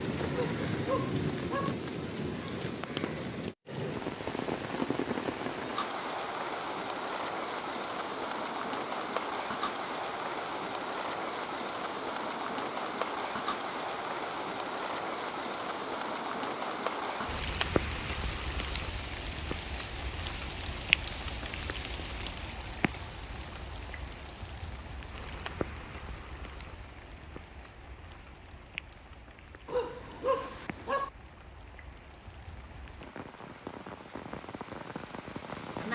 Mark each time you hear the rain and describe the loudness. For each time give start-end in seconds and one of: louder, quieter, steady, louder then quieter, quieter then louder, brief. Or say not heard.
0.0-35.9 quieter.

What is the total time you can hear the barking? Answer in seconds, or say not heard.
3 s.